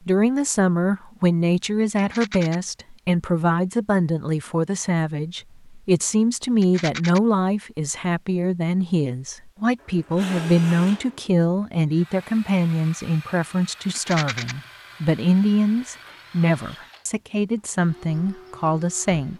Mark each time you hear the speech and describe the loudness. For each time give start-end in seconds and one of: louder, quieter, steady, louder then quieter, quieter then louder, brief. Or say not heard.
0.1-19.3 steady.